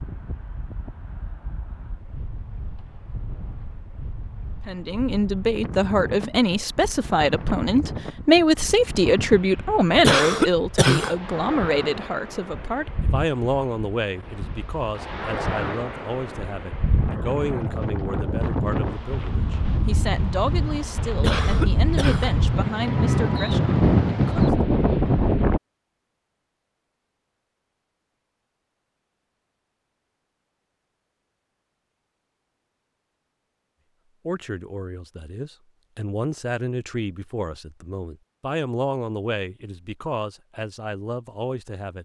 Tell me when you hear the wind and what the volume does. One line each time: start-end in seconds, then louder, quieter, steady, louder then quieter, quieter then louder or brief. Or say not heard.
0.0-25.6 louder.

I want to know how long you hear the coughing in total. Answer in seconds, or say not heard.
2 s.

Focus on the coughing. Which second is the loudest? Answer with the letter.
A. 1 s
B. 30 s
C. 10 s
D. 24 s
C.